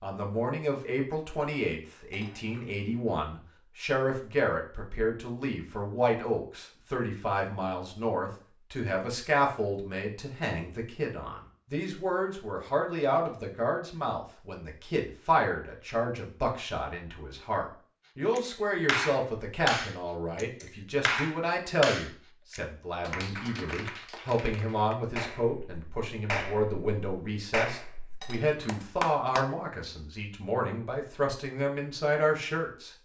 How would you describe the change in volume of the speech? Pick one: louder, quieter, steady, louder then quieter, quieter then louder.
steady.